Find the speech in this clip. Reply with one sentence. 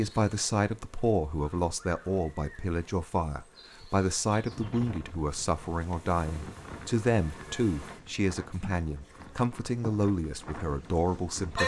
The speech can be heard from 0.0 to 11.6 s.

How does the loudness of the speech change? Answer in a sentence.
The loudness of the speech stays about the same.